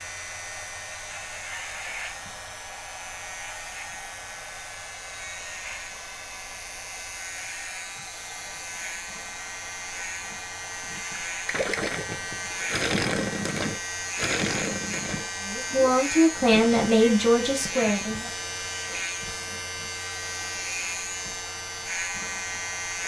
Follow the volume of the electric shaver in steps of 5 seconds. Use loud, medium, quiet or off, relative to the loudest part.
medium, medium, loud, loud, loud.